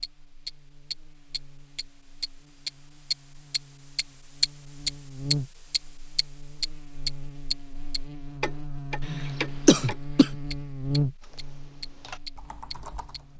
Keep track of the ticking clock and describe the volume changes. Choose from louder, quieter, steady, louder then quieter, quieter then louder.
louder then quieter.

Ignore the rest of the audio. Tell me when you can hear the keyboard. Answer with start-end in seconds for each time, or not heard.
11.2-13.3.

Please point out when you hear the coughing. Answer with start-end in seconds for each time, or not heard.
9.1-10.3.